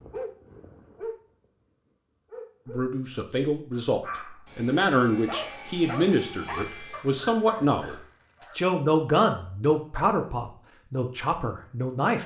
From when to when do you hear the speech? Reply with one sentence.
The speech can be heard from 2.6 to 12.2 s.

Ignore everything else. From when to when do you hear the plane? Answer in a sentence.
The plane can't be heard in this clip.